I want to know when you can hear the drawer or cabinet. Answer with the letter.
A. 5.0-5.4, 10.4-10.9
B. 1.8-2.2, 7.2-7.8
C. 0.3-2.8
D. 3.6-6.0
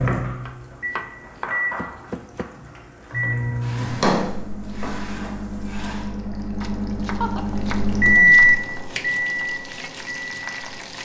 D.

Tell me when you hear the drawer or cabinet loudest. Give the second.
4 s.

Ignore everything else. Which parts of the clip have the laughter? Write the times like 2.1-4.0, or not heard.
1.8-2.2, 7.2-7.8.